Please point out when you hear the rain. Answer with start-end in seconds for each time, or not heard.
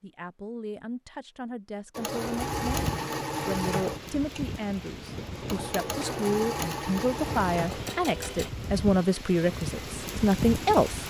2.4-11.0.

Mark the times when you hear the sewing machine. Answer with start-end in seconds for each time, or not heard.
1.9-8.5.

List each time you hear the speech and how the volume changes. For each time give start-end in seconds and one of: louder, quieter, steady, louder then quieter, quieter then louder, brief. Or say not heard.
0.0-11.0 louder.